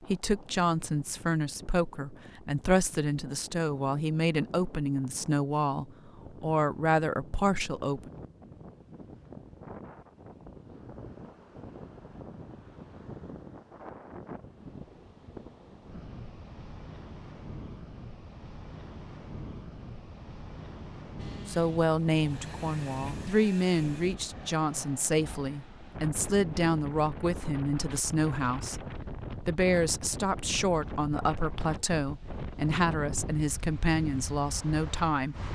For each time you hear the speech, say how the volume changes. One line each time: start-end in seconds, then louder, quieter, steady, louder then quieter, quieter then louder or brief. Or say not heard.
0.1-8.1 steady
21.4-35.5 steady.